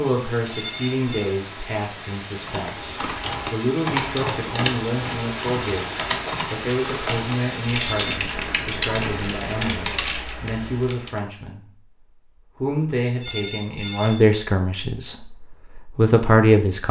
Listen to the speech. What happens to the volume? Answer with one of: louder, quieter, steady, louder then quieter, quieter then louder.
louder.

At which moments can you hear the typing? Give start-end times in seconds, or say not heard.
2.5-11.2.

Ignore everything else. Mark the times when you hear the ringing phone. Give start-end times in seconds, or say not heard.
0.5-1.4, 7.8-8.2, 13.2-14.2.